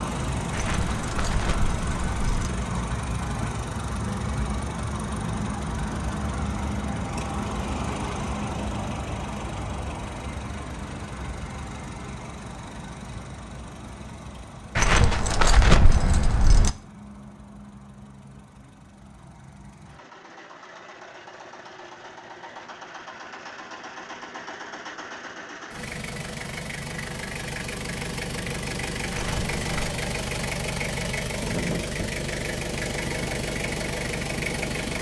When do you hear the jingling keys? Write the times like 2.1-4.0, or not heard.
0.5-2.5, 14.8-16.7, 29.1-30.0.